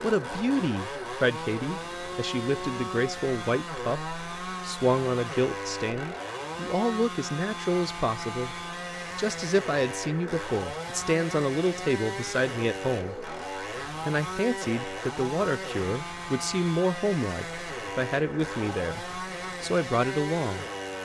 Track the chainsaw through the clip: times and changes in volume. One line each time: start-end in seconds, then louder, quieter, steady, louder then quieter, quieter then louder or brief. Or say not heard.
0.0-20.9 steady.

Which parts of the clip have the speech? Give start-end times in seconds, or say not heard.
0.0-8.6, 9.2-13.3, 14.1-20.6.